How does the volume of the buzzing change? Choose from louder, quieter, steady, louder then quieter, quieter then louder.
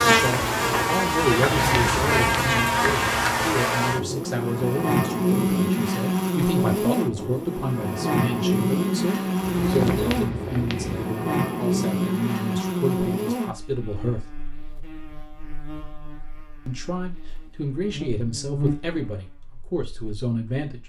quieter.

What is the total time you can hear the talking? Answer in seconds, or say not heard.
18 s.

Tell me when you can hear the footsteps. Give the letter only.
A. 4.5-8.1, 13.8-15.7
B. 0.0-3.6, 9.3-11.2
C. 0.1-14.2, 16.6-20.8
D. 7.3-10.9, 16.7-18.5
B.